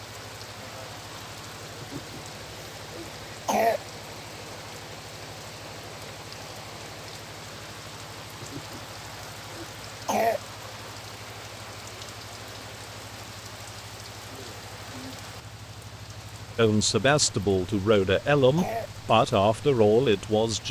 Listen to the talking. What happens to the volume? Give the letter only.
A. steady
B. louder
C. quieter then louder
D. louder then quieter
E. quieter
A.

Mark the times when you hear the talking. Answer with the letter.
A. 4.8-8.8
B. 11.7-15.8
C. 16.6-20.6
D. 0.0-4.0
C.